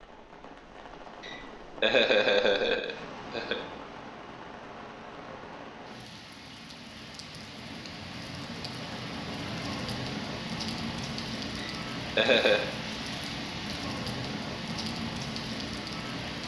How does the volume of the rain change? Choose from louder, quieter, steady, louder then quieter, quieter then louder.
louder.